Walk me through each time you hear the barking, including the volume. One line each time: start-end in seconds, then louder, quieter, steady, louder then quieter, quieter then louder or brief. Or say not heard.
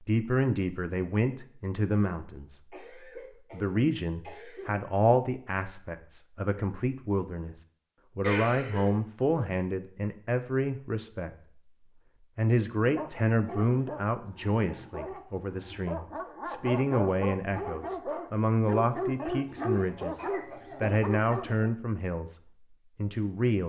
12.8-21.8 louder.